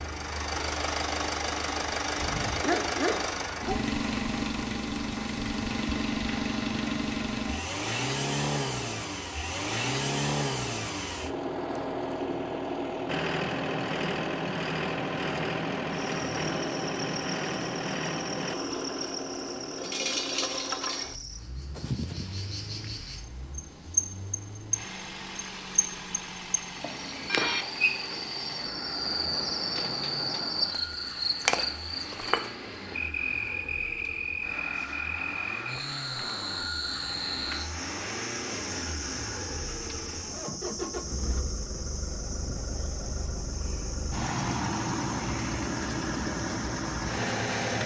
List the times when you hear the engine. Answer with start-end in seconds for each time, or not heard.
0.0-47.8.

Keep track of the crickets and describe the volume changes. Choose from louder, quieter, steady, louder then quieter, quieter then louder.
louder then quieter.